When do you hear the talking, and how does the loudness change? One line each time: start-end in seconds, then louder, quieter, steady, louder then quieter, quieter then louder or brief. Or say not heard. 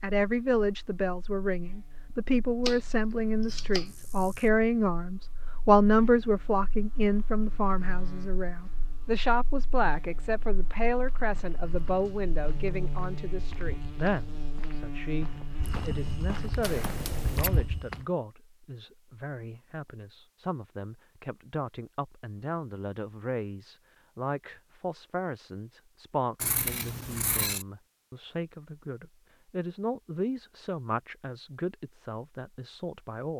0.0-33.3 quieter.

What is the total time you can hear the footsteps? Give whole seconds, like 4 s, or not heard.
7 s.